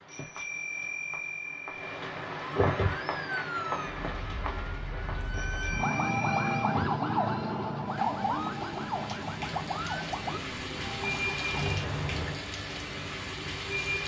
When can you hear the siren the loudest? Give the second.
7 s.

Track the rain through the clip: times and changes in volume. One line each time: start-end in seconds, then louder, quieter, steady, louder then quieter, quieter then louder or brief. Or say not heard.
0.0-14.0 quieter then louder.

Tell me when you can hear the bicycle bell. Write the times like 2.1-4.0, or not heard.
0.1-1.9, 5.3-6.8, 11.5-12.4.